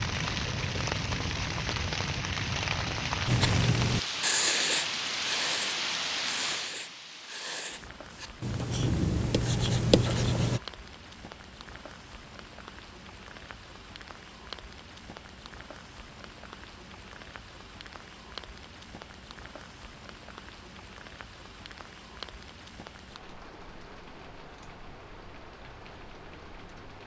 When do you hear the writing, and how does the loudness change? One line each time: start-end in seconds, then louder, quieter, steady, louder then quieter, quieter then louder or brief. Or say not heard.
3.2-10.6 quieter then louder.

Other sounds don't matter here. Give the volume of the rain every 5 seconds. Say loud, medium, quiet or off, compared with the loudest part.
loud, loud, quiet, quiet, quiet, quiet.